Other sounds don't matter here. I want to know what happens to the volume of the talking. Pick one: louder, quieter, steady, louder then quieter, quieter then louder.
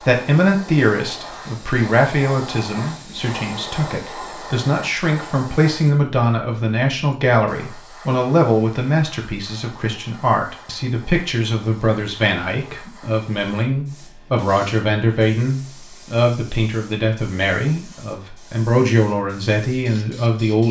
steady.